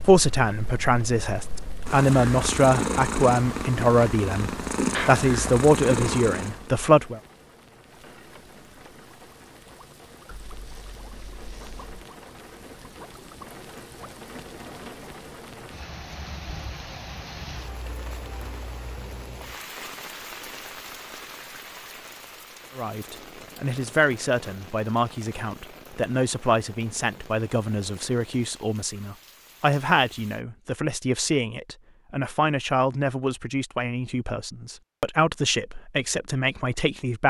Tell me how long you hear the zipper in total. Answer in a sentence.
The zipper can be heard for 2 seconds in total.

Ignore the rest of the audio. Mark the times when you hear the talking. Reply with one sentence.
The talking can be heard from 0.0 to 7.2 s and from 22.8 to 37.2 s.